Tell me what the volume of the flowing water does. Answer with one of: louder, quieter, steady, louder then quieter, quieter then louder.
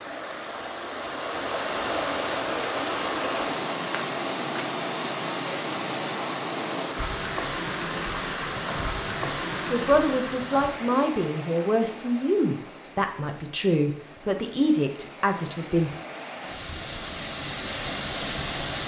quieter then louder.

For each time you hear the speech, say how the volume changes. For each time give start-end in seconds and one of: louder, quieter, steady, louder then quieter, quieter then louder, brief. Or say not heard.
9.1-15.9 steady.